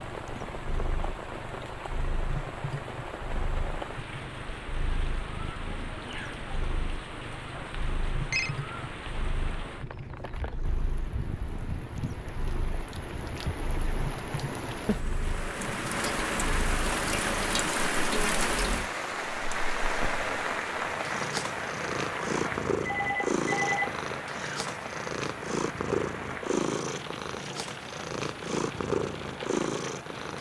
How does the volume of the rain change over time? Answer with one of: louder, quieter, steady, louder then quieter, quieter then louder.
louder then quieter.